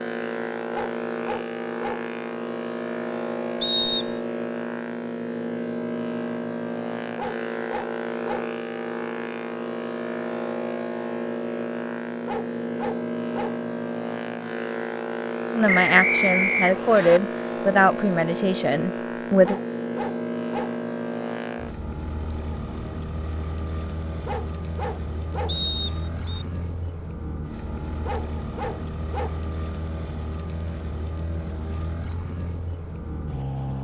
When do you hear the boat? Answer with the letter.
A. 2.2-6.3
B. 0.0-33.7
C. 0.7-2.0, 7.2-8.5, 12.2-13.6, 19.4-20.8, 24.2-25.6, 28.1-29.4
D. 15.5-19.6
B.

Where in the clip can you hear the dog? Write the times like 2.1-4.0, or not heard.
0.7-2.0, 7.2-8.5, 12.2-13.6, 19.4-20.8, 24.2-25.6, 28.1-29.4.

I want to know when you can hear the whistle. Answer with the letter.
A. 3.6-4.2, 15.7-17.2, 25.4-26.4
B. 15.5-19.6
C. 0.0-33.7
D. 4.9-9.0
A.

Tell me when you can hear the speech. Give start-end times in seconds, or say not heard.
15.5-19.6.